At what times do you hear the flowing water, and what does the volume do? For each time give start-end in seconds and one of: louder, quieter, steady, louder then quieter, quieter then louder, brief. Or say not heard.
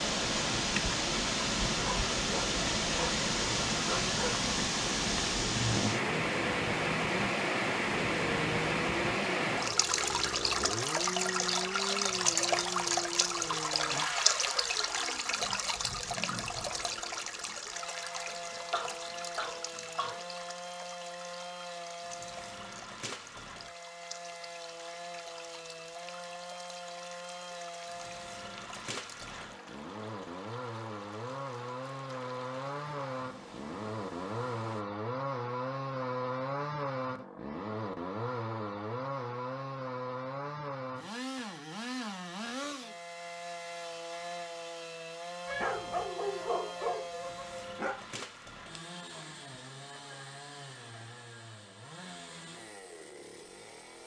0.0-34.9 quieter.